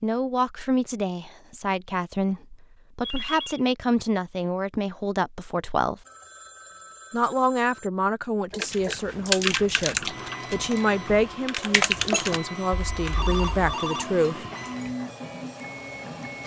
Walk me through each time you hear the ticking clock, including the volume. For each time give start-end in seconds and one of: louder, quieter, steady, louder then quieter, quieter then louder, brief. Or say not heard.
not heard.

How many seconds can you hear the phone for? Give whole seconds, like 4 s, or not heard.
4 s.